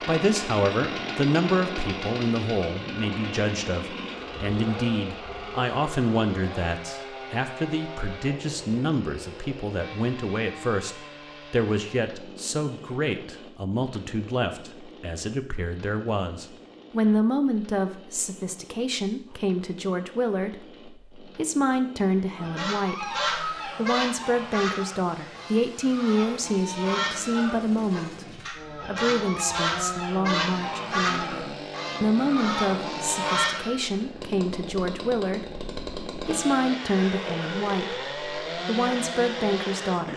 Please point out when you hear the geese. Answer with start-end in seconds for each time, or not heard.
22.4-33.8.